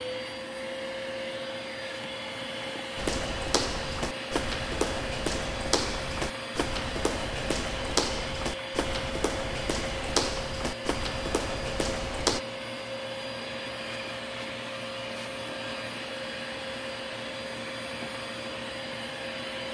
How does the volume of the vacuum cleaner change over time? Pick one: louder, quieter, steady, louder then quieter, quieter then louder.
steady.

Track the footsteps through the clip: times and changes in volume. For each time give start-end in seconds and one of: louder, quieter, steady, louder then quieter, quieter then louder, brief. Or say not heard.
3.0-12.4 steady.